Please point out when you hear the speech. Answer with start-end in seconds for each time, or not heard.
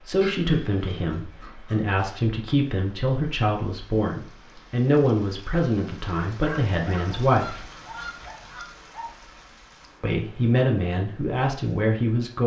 0.1-7.7, 10.0-12.4.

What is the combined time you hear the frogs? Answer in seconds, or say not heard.
not heard.